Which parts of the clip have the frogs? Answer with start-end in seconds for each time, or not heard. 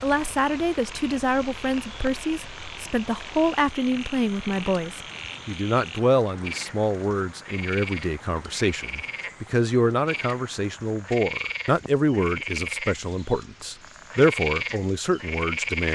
0.0-15.8.